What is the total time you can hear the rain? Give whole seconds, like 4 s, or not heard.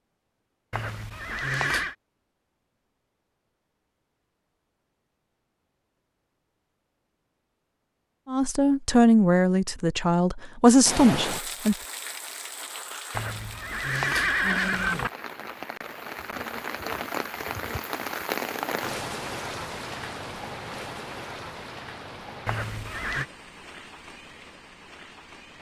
15 s.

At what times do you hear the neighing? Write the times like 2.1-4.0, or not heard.
0.7-1.9, 13.1-15.1, 22.4-23.2.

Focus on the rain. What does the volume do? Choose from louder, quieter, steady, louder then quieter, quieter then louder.
louder then quieter.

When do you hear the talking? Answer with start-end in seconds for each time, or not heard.
8.2-11.8.